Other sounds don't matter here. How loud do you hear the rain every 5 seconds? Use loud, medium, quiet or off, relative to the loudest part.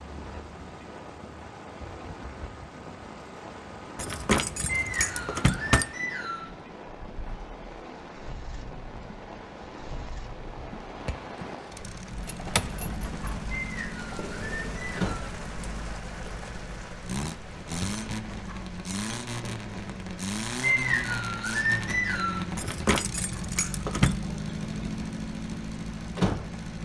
loud, loud, loud, loud, medium, medium.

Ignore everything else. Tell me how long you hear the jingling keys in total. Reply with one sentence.
The jingling keys can be heard for 5 seconds in total.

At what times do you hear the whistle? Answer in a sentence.
The whistle can be heard from 4.7 to 6.5 s, from 13.6 to 15.3 s and from 20.6 to 22.4 s.